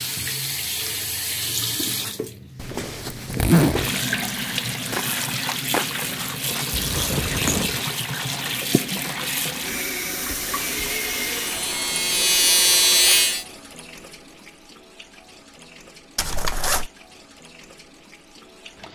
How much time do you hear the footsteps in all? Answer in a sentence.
The footsteps can't be heard in this clip.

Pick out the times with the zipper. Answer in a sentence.
You can hear the zipper from 2.5 to 3.9 s, from 6.7 to 7.8 s and from 16.1 to 16.9 s.